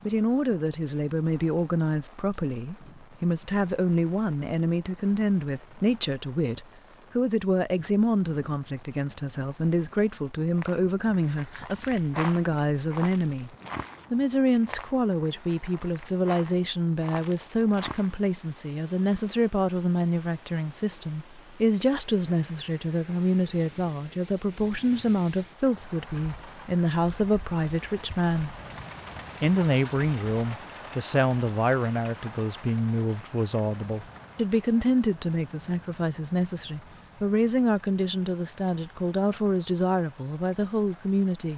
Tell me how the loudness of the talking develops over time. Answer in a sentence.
The volume of the talking stays about the same.